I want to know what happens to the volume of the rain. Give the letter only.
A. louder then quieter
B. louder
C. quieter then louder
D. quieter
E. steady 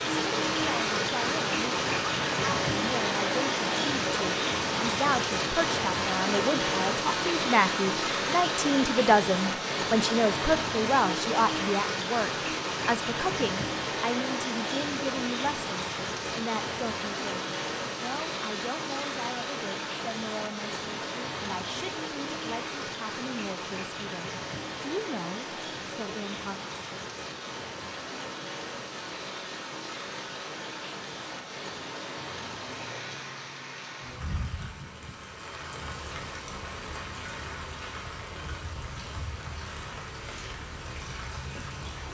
D.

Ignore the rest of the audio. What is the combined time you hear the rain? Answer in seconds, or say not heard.
42 s.